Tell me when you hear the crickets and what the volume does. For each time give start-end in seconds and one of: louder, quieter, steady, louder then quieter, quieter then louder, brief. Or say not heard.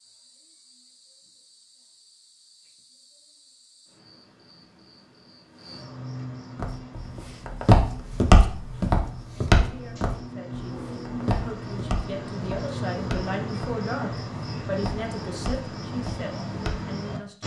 0.0-17.4 louder.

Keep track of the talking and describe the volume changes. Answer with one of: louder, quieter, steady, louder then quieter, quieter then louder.
louder then quieter.